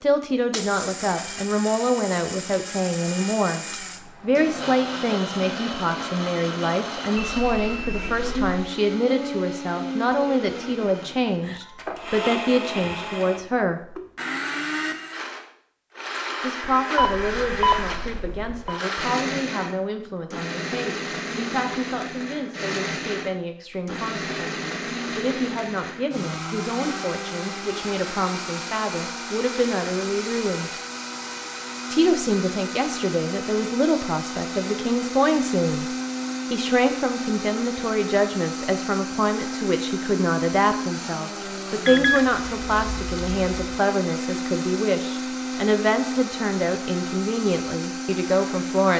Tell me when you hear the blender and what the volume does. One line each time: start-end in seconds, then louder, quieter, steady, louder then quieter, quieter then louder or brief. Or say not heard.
0.0-48.9 steady.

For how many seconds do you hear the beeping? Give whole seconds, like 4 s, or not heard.
5 s.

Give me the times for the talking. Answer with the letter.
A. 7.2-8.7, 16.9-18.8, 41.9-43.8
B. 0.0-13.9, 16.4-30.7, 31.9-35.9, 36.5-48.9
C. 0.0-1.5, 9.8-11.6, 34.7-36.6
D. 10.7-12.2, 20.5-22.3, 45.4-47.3
B.